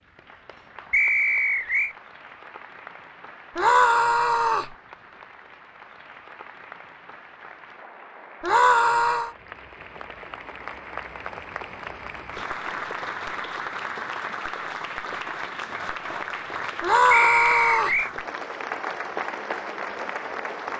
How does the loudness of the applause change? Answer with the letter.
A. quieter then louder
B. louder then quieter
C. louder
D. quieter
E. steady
C.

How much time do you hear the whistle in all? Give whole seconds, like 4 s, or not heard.
2 s.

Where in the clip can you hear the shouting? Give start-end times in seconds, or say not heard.
3.5-4.8, 8.4-9.3, 16.8-18.0.